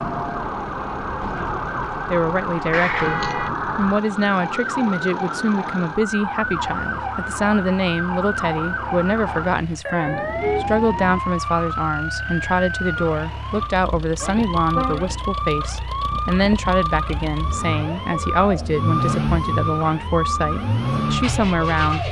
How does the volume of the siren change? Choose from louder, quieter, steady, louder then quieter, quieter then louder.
steady.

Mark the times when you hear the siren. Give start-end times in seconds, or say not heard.
0.0-22.0.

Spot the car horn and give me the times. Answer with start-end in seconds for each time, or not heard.
2.5-3.5, 10.1-11.2, 14.7-15.3.